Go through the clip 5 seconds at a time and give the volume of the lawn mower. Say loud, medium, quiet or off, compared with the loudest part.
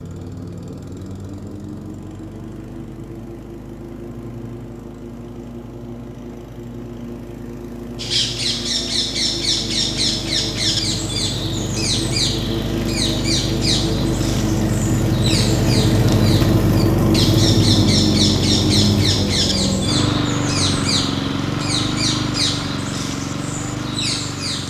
quiet, quiet, medium, loud, medium.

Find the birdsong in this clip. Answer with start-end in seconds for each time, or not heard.
8.0-24.6.